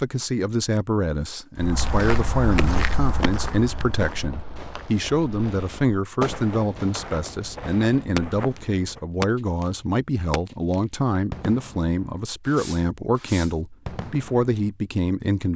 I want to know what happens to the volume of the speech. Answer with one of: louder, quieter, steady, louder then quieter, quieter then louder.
steady.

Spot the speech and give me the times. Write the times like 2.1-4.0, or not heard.
0.0-15.5.